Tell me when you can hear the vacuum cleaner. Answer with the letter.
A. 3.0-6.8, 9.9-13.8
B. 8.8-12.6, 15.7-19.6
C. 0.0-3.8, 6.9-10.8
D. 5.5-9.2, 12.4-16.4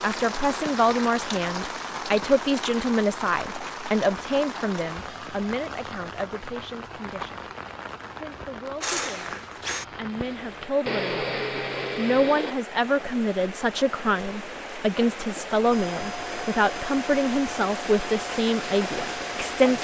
B.